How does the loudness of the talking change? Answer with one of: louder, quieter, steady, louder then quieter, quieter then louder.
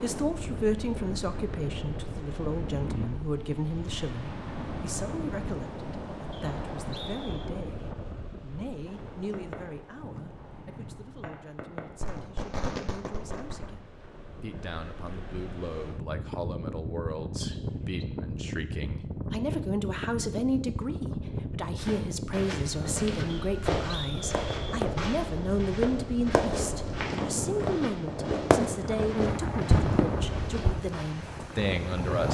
quieter then louder.